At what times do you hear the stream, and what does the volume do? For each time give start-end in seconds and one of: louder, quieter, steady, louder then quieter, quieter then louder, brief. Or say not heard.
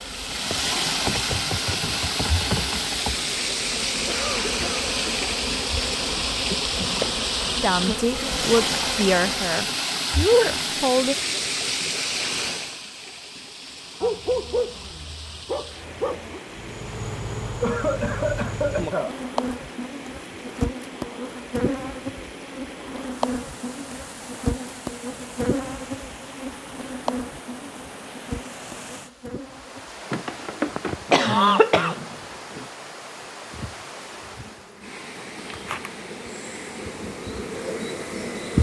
0.0-38.5 quieter.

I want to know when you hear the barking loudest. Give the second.
14 s.